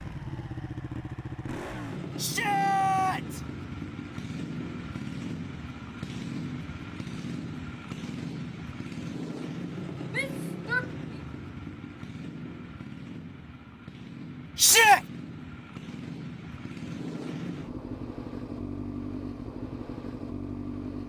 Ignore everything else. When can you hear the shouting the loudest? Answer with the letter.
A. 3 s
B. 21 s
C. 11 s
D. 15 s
D.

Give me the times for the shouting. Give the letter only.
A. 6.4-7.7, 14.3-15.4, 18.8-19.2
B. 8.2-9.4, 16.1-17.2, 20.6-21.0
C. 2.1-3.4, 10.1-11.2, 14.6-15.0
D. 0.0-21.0
C.